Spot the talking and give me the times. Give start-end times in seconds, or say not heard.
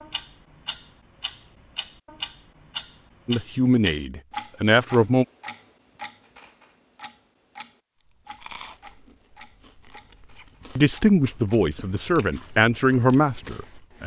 3.2-5.2, 10.8-14.0.